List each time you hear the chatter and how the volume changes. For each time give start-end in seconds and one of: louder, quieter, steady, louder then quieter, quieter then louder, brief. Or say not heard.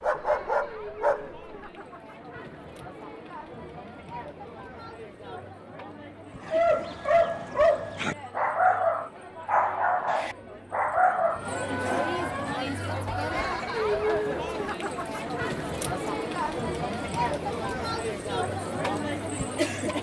0.0-19.9 louder.